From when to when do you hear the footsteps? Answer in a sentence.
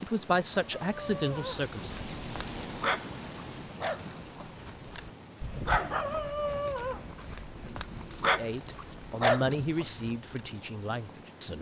The footsteps can't be heard in this clip.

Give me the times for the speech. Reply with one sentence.
You can hear the speech from 0.0 to 2.0 s and from 8.2 to 11.5 s.